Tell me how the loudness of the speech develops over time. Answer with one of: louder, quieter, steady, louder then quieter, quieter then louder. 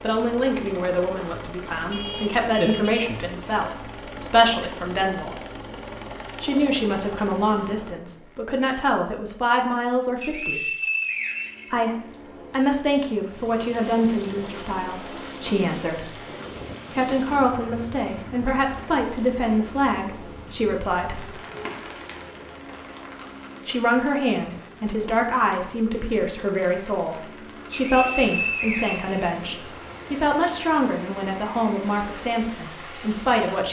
steady.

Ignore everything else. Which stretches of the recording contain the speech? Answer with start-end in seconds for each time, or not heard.
0.0-5.4, 6.4-10.7, 11.7-16.2, 16.9-21.2, 23.6-33.6.